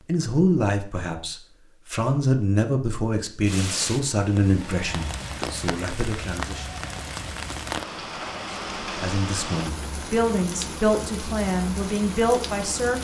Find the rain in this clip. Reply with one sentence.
You can hear the rain from 3.5 to 13.0 s.